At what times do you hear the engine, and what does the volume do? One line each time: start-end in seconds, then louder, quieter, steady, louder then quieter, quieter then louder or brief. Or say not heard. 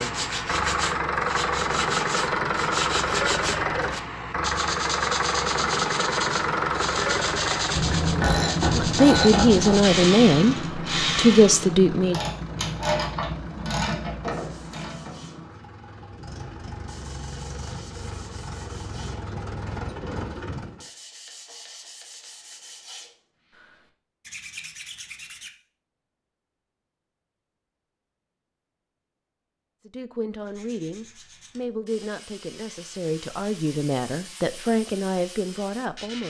0.0-20.9 quieter.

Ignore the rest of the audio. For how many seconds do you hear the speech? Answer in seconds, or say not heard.
10 s.